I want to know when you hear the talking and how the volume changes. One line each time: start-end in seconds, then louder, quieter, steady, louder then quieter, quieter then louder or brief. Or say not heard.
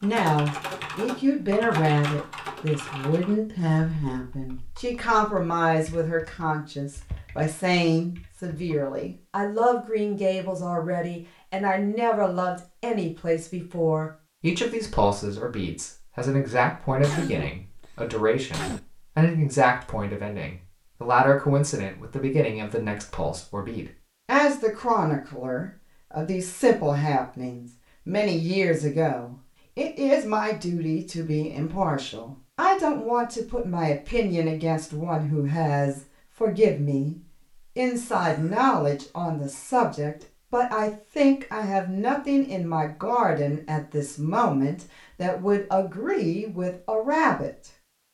0.0-37.1 steady
37.8-47.5 steady.